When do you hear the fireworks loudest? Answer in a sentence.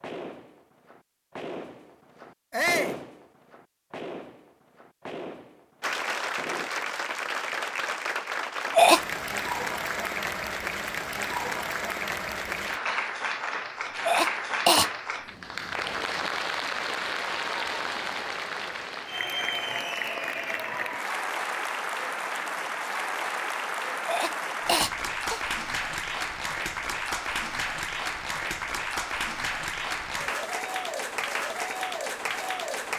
The volume of the fireworks peaks at 3 seconds.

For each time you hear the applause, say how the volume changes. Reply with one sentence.
You can hear the applause from 5.8 to 32.9 s, at a steady volume.